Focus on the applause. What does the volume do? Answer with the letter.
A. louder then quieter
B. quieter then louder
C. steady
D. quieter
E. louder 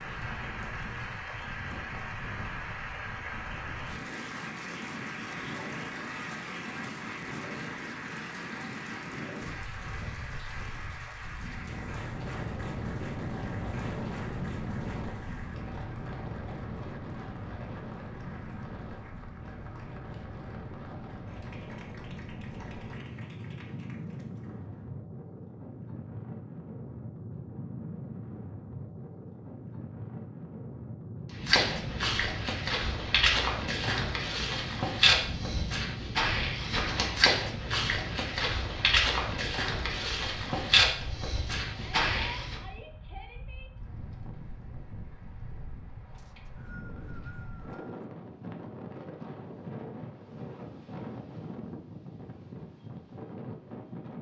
D.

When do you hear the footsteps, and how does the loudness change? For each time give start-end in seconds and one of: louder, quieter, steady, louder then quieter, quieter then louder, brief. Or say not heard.
31.4-42.6 steady.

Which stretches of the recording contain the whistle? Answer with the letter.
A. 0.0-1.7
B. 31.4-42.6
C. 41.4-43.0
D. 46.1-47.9
D.